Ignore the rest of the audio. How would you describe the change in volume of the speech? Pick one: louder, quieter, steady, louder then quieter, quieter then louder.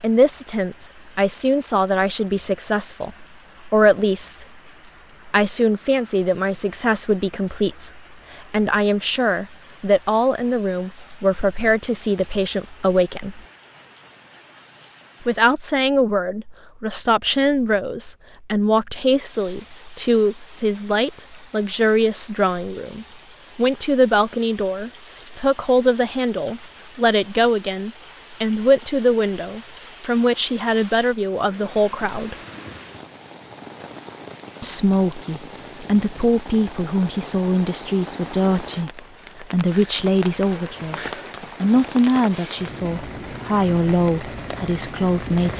steady.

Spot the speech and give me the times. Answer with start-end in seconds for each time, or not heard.
0.0-4.5, 5.2-13.4, 15.2-32.4, 34.6-45.5.